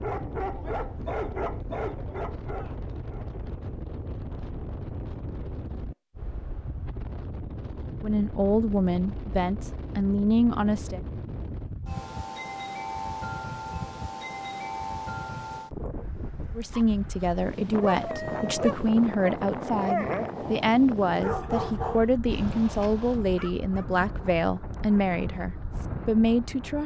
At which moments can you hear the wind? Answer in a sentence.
The wind can be heard from 0.0 to 26.8 s.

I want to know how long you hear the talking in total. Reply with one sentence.
The talking can be heard for 13 seconds in total.